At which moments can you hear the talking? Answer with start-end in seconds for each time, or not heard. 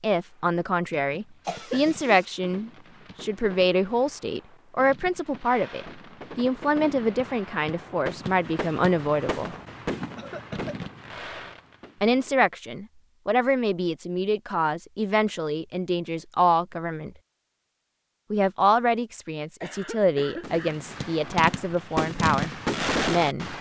0.0-9.6, 12.0-17.1, 18.3-23.5.